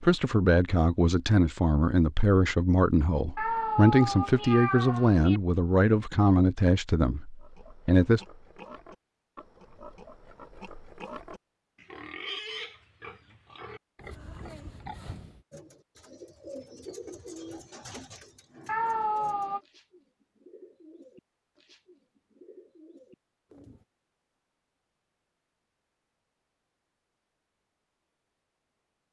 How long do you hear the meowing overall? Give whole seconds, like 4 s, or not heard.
3 s.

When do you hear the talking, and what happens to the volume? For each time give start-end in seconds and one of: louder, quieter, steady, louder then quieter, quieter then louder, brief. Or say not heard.
0.0-8.2 steady.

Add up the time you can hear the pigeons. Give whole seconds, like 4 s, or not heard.
8 s.